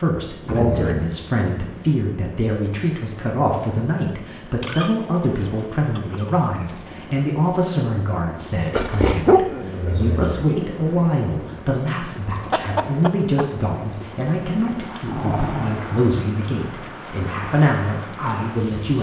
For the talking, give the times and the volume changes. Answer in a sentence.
The talking can be heard from 0.0 to 18.9 s, at a steady volume.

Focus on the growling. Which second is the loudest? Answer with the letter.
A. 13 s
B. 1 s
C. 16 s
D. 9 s
D.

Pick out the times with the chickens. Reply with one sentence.
The chickens can be heard from 4.6 to 6.5 s and from 12.5 to 13.4 s.